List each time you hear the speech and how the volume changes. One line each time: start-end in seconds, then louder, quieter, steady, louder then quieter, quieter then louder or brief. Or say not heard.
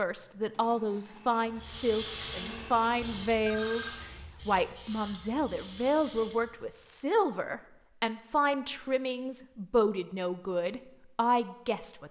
0.0-12.0 steady.